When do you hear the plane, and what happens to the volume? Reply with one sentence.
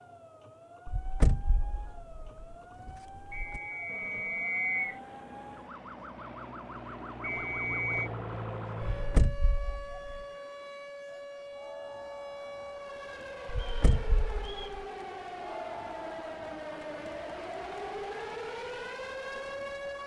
You can hear the plane from 3.9 to 9.2 s, getting louder.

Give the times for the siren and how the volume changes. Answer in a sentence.
The siren can be heard from 0.0 to 20.0 s, getting louder.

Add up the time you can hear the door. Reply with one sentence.
You can hear the door for 5 seconds altogether.